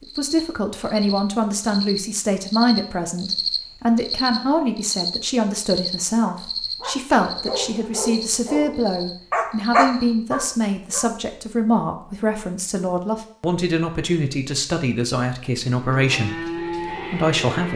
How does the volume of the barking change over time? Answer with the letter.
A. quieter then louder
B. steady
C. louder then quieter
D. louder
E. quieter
C.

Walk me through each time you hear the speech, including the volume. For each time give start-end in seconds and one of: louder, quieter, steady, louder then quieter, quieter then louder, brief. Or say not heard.
0.0-17.7 steady.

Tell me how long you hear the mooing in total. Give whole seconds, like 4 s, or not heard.
2 s.